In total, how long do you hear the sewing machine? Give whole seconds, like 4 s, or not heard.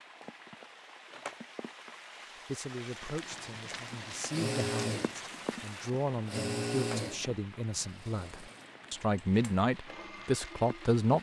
8 s.